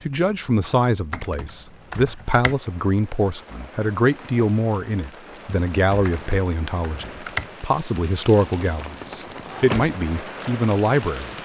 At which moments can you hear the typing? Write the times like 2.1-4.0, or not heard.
1.1-2.5, 6.0-7.5.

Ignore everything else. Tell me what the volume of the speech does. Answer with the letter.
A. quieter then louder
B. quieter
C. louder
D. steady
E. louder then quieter
D.